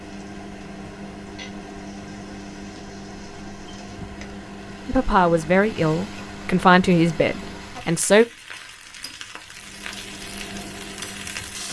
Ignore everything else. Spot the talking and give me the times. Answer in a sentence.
The talking can be heard from 4.8 to 8.2 s.